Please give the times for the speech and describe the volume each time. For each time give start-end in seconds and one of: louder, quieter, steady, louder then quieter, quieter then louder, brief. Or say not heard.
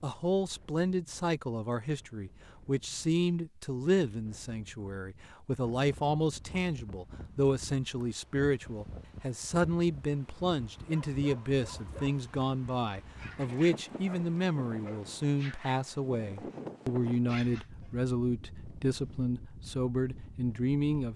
0.0-21.1 steady.